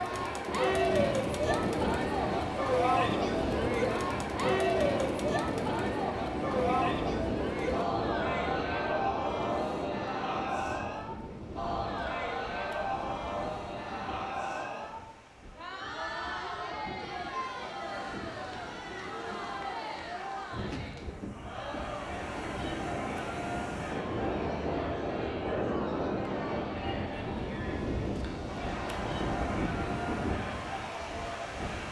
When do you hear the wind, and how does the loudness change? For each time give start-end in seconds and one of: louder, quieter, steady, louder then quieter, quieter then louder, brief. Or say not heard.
0.0-31.8 quieter then louder.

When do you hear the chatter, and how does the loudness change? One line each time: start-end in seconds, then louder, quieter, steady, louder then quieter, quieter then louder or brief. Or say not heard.
0.0-31.8 quieter.